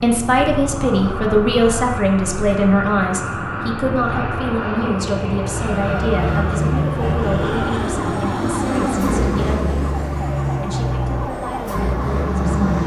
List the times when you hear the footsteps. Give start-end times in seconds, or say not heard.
not heard.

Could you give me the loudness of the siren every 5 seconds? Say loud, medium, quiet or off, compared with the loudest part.
off, loud, loud.